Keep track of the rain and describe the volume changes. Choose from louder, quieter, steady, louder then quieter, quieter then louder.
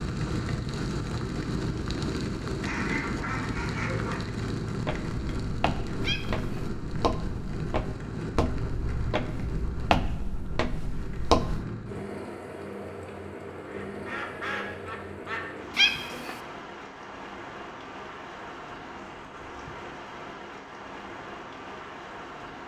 quieter.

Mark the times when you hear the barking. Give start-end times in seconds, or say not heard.
not heard.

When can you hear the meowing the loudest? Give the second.
16 s.